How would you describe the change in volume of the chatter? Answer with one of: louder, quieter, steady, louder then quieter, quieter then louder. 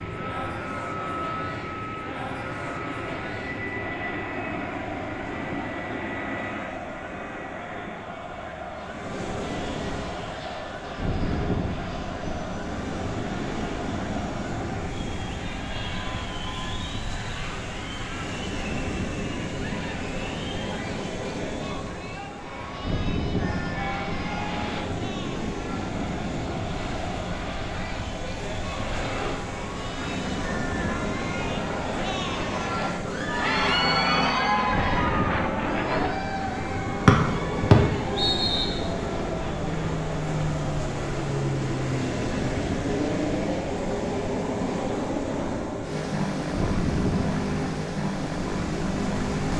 louder.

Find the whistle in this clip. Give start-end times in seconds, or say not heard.
37.0-38.8.